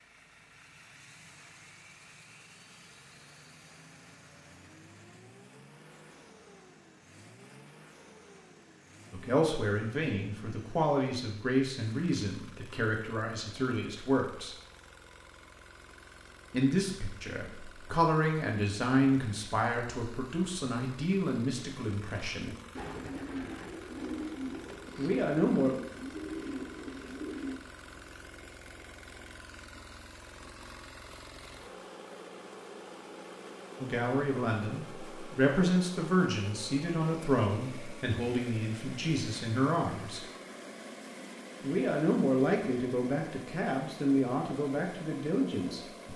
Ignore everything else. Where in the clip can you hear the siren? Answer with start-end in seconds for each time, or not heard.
not heard.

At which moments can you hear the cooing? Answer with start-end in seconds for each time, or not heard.
22.4-27.6.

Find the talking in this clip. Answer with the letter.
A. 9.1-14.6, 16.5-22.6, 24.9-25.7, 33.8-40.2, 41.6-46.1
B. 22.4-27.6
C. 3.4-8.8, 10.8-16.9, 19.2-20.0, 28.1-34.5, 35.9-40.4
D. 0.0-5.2
A.